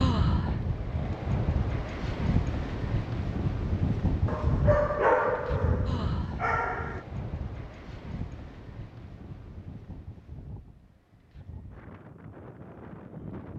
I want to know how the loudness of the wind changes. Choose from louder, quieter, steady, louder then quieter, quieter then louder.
quieter.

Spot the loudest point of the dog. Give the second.
5 s.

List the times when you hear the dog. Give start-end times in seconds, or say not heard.
4.2-7.0.